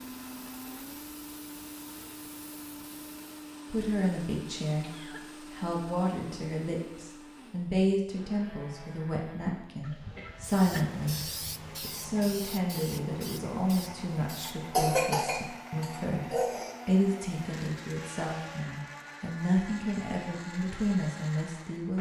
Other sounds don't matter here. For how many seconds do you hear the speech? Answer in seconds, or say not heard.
18 s.